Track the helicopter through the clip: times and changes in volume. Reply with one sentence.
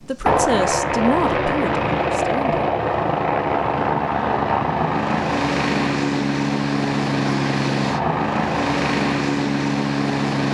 You can hear the helicopter from 0.0 to 10.4 s, at a steady volume.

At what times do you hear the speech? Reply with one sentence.
You can hear the speech from 0.0 to 2.6 s.